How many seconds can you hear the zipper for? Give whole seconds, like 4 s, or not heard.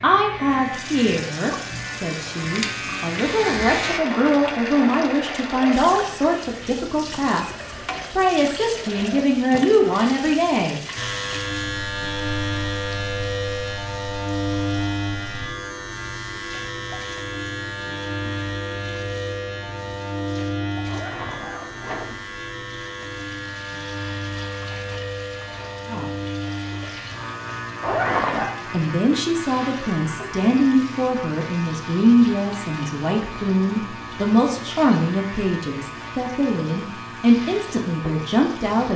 3 s.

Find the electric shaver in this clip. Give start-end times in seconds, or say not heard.
0.0-4.0, 10.9-38.9.